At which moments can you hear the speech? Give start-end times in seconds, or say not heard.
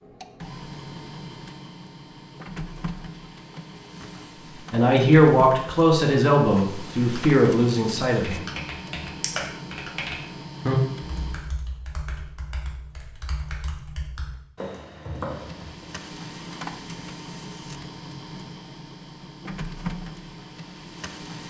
4.7-8.4.